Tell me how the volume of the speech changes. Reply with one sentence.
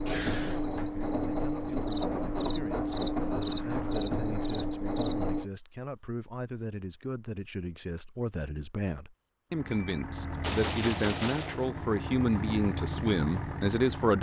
The volume of the speech goes up.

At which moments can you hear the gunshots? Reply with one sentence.
You can hear the gunshots from 9.7 to 11.7 s.